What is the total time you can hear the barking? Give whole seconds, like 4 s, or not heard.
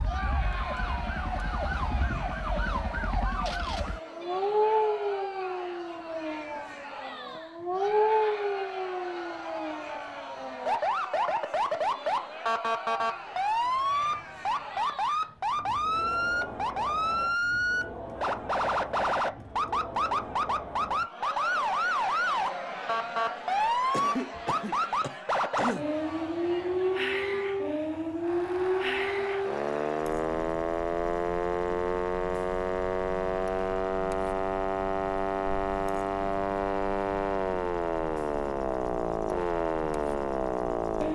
not heard.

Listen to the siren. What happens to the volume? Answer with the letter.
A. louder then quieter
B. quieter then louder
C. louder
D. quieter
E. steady
E.